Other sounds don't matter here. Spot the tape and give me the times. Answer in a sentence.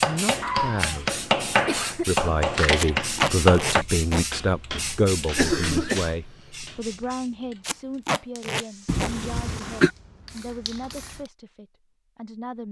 The tape can be heard from 2.8 to 4.2 s and from 7.6 to 9.1 s.